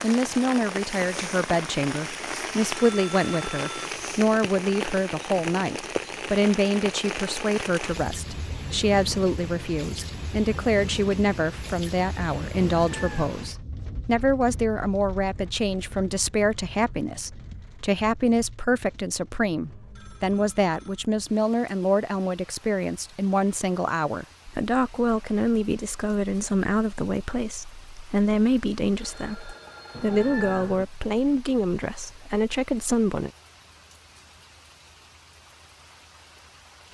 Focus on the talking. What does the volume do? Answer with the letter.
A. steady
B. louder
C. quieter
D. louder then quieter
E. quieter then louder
A.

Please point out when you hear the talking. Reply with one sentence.
The talking can be heard from 0.0 to 33.3 s.